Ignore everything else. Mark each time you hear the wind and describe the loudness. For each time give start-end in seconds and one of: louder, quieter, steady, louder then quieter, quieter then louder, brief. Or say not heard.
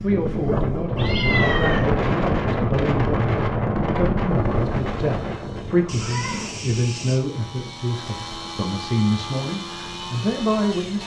0.0-11.0 quieter.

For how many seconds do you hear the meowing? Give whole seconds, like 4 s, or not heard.
2 s.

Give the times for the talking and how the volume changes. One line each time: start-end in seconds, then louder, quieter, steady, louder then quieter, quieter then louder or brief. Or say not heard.
0.0-11.0 steady.